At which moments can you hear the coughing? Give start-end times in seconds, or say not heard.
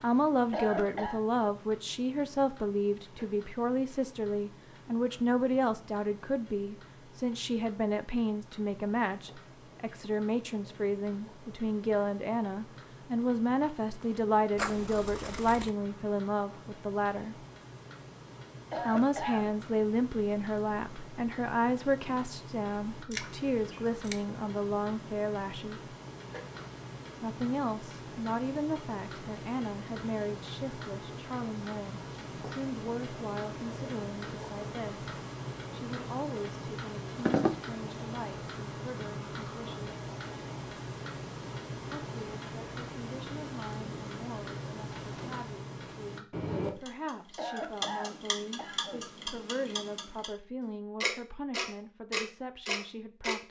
0.5-1.2, 18.7-19.5, 47.4-49.0.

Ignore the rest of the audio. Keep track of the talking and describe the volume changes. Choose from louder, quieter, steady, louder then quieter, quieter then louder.
quieter.